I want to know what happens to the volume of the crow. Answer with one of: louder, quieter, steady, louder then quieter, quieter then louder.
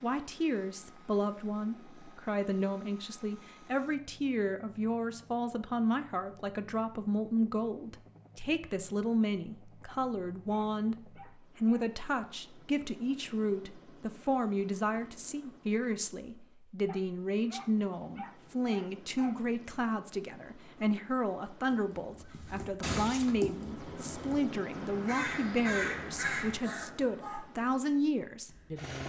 quieter then louder.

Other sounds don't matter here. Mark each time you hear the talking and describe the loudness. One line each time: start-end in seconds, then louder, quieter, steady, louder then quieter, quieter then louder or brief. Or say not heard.
0.0-29.0 steady.